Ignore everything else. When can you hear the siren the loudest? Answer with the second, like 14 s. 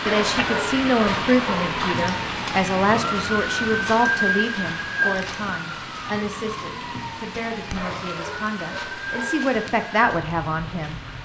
5 s.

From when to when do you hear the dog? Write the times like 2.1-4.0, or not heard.
0.0-1.8, 7.7-9.5.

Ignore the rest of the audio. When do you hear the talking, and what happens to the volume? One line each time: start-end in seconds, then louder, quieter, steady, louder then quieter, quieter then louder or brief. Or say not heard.
0.1-11.0 quieter then louder.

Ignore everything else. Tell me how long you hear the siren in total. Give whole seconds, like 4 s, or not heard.
11 s.